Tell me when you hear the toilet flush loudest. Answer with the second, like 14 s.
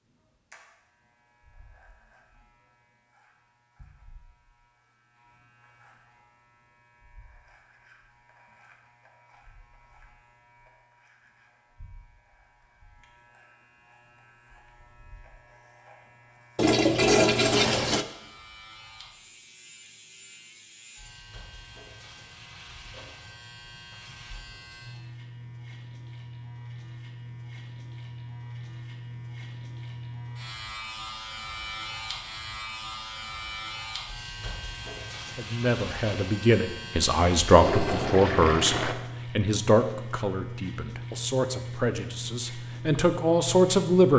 17 s.